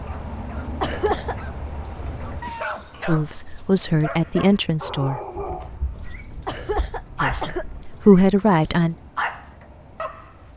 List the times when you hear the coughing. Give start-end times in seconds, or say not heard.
0.8-1.4, 6.5-7.7.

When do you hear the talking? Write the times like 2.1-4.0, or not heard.
3.0-5.2, 7.2-8.9.